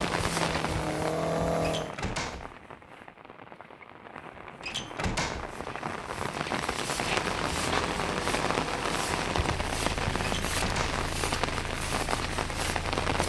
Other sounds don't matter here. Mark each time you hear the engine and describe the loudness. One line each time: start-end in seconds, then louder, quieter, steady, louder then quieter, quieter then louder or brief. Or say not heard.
0.0-1.9 brief
7.0-13.1 quieter.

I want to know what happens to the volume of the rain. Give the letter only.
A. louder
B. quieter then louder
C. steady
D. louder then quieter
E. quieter
B.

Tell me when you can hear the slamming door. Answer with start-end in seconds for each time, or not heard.
1.6-2.5, 4.6-5.5, 10.4-11.1.